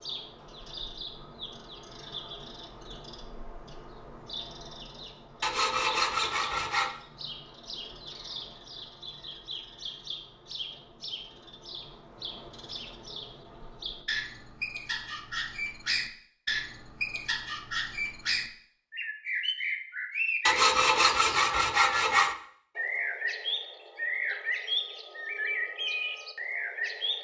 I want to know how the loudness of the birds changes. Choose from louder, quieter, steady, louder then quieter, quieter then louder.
louder.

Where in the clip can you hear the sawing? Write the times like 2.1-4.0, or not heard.
5.4-7.0, 20.4-22.4.